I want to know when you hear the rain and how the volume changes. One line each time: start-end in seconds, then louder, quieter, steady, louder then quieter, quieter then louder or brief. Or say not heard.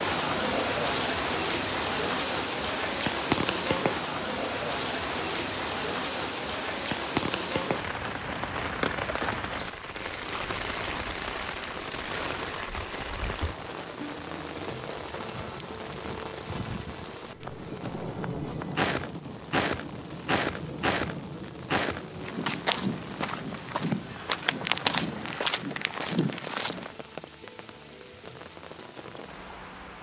0.0-29.9 quieter.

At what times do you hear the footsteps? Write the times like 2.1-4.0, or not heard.
17.2-26.9.